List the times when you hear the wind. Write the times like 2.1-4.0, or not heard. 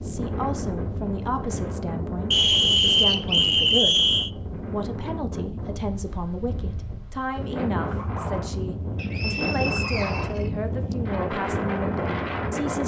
0.0-12.8.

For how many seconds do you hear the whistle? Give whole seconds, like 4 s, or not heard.
4 s.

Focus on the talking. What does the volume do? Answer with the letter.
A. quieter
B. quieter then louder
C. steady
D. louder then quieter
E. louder
C.